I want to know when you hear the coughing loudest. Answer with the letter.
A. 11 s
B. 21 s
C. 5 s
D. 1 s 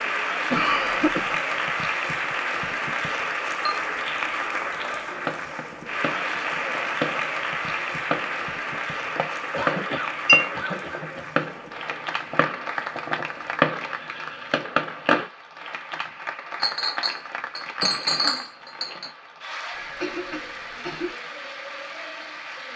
D.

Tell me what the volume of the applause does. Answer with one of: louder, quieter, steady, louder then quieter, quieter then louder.
quieter.